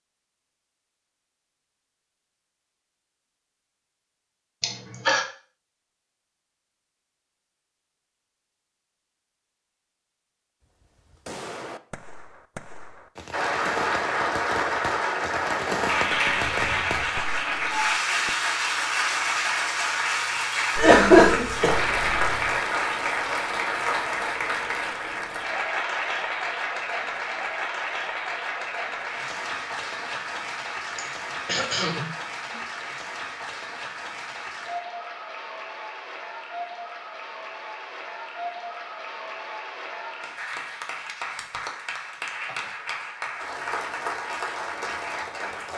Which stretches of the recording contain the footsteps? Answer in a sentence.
The footsteps can't be heard in this clip.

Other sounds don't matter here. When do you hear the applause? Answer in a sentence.
The applause can be heard from 13.3 to 45.7 s.